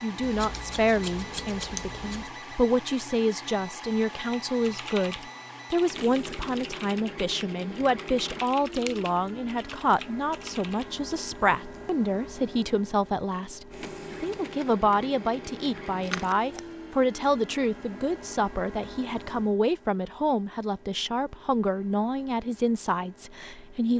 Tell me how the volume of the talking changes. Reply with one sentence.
The loudness of the talking stays about the same.